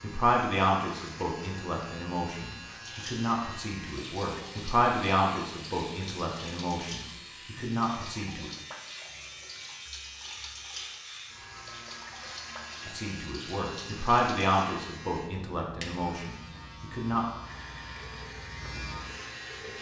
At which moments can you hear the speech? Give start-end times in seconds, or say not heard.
0.0-8.5, 12.8-17.2.